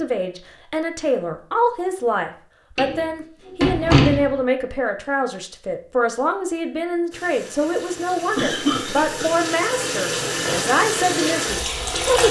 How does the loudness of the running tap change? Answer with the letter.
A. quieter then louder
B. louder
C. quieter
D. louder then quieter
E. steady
B.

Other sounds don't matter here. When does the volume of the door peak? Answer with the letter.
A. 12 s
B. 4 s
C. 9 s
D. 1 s
B.